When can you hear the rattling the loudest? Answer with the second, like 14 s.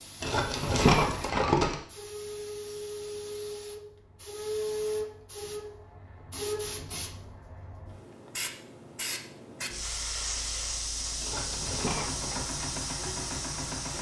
1 s.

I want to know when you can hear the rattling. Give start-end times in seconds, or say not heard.
0.2-1.8, 11.2-12.4.